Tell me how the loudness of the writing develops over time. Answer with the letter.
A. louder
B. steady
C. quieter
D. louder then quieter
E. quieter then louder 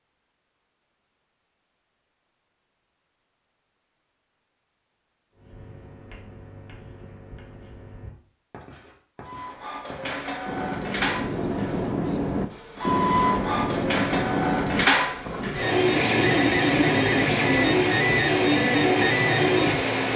A.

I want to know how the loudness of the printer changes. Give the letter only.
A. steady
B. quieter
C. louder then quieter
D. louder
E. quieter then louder
D.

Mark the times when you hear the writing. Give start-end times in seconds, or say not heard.
5.3-15.6.